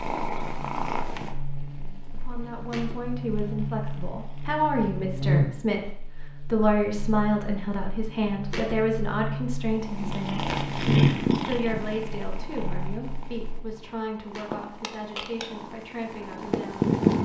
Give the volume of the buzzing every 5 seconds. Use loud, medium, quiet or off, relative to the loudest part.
medium, loud, loud, off.